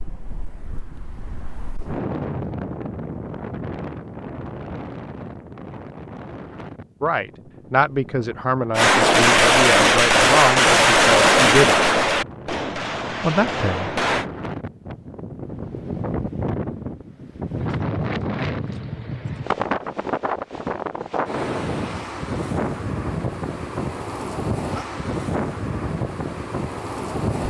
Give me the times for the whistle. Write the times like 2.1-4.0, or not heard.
not heard.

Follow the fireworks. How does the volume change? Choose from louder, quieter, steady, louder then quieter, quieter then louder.
quieter.